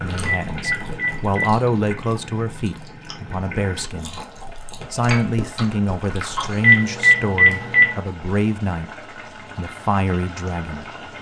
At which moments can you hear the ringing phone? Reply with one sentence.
The ringing phone can be heard from 0.2 to 1.6 s and from 6.6 to 8.0 s.